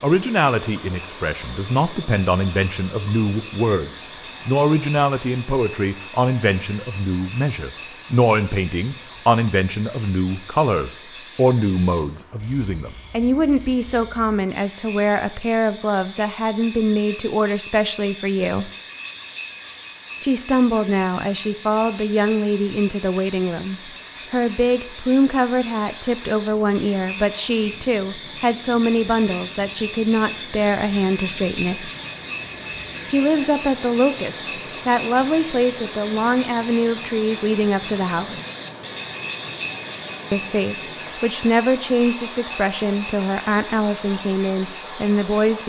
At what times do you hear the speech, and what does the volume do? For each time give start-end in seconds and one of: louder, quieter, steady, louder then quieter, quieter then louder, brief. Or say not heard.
0.0-18.7 steady
20.2-31.9 steady
33.1-38.4 steady
40.3-45.6 steady.